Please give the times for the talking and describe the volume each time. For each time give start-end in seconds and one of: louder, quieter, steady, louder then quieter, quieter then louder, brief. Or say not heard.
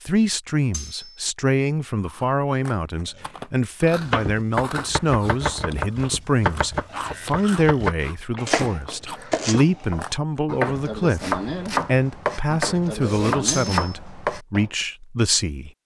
0.0-15.8 steady.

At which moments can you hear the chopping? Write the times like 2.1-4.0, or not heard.
4.0-14.7.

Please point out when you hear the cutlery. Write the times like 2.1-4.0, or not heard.
0.7-1.2, 13.4-13.9.